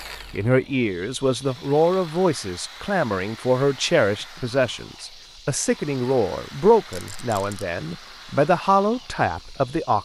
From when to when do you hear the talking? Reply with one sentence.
You can hear the talking from 0.3 to 10.0 s.